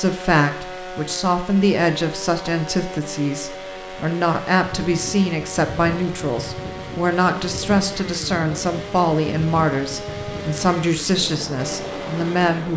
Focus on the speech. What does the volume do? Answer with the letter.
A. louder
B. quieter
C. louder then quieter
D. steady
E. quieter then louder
D.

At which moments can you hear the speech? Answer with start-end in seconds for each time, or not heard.
0.0-12.7.